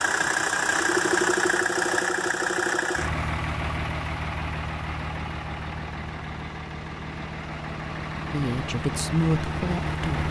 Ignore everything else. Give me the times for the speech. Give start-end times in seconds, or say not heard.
8.3-10.2.